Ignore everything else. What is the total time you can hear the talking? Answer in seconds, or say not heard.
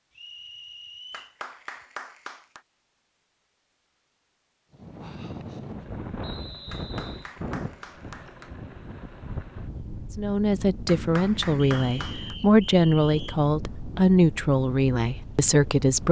6 s.